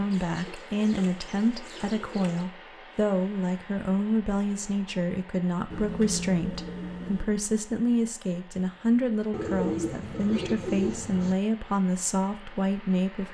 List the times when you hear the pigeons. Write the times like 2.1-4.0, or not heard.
0.1-2.5, 5.7-7.3, 9.3-11.3.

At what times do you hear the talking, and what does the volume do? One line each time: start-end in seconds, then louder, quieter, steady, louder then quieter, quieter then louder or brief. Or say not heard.
0.0-13.3 steady.